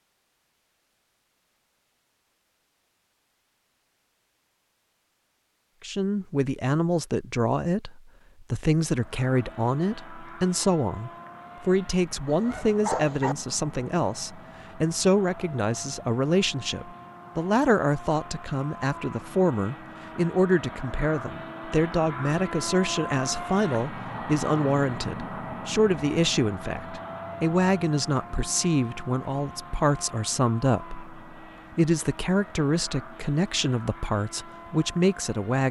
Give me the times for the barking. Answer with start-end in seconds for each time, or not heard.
12.2-13.3.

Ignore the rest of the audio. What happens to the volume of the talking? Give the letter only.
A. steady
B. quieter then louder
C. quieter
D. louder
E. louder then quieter
A.